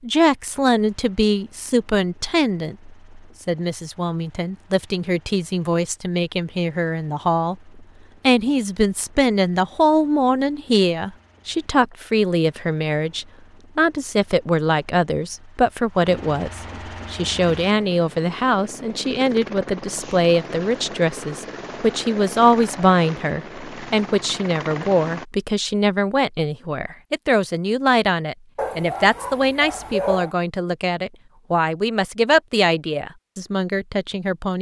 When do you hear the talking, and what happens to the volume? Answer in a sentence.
The talking can be heard from 0.0 to 34.5 s, at a steady volume.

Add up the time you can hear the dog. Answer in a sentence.
The dog can be heard for 2 seconds in total.